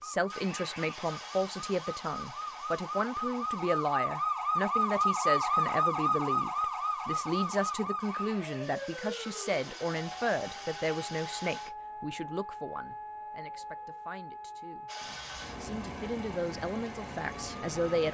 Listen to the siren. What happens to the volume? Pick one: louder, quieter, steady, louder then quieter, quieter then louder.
louder then quieter.